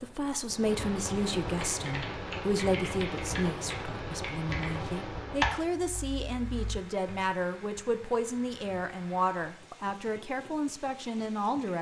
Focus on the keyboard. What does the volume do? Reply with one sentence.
The loudness of the keyboard goes up, then down.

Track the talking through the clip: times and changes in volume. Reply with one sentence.
You can hear the talking from 0.0 to 11.7 s, at a steady volume.